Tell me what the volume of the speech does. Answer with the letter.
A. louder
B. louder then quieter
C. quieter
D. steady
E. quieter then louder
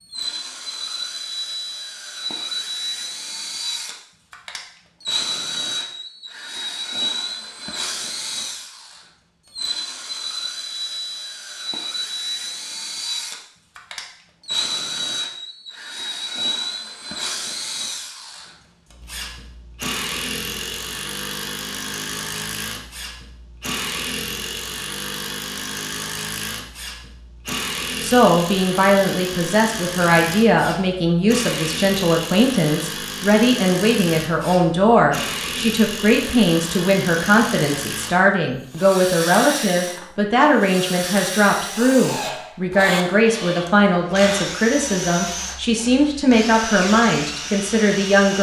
D.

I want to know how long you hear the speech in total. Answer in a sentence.
The speech can be heard for 20 seconds in total.